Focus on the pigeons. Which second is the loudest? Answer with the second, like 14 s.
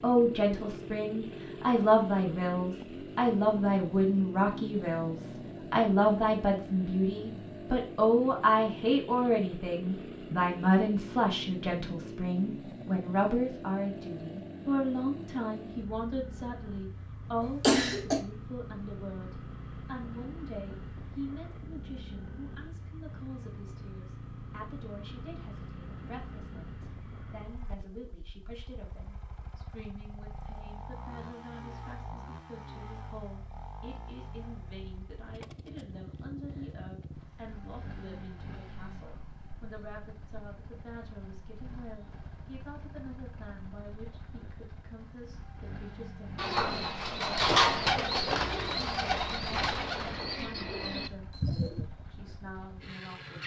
48 s.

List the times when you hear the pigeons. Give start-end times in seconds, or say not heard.
46.4-51.9.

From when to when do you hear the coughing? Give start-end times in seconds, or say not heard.
17.4-18.2.